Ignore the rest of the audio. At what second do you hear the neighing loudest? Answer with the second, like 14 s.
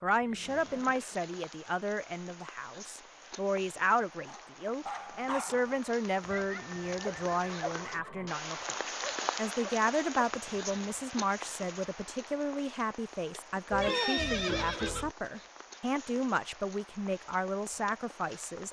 14 s.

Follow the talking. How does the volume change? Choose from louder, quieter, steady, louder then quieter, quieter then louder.
steady.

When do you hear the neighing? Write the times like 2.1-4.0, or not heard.
0.2-1.2, 6.3-8.3, 13.7-15.2.